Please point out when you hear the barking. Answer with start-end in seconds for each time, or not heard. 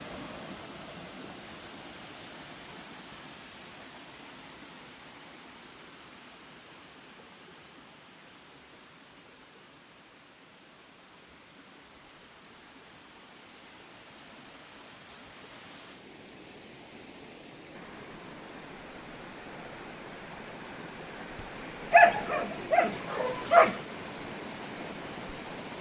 21.9-23.8.